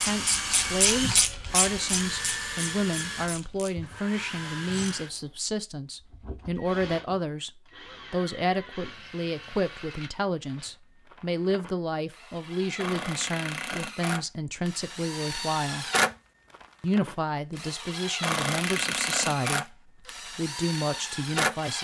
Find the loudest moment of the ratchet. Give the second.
1 s.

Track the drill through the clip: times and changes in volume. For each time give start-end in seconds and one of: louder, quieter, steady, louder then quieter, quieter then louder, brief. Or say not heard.
0.0-21.7 quieter then louder.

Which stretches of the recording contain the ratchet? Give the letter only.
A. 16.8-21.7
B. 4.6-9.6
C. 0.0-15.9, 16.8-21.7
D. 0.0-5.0
D.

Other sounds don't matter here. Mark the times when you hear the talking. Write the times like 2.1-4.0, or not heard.
0.0-15.9, 16.8-21.7.